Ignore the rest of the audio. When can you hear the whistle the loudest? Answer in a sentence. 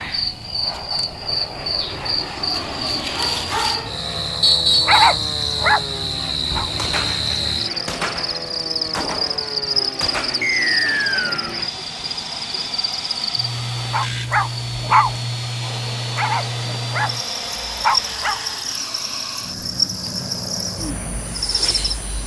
The volume of the whistle peaks at 5 seconds.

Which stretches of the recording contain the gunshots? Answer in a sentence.
The gunshots can be heard from 6.5 to 10.4 s.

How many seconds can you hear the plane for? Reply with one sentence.
The plane can be heard for 22 seconds in total.